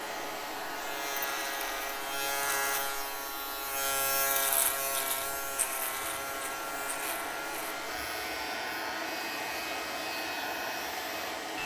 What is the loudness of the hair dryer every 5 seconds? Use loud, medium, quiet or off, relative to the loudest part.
medium, loud, loud.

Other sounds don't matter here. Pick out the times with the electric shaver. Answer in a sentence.
You can hear the electric shaver from 0.0 to 11.6 s.